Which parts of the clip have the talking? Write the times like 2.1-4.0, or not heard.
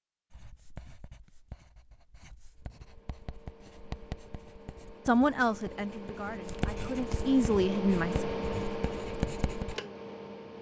5.0-8.2.